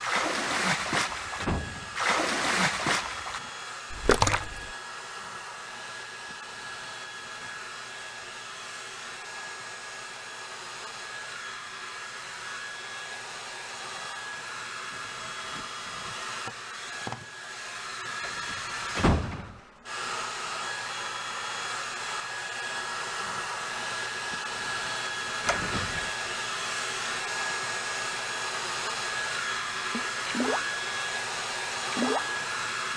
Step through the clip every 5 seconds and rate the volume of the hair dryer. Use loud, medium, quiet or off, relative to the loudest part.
medium, medium, medium, medium, loud, loud, loud.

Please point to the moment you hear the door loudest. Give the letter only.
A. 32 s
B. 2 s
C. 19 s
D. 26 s
C.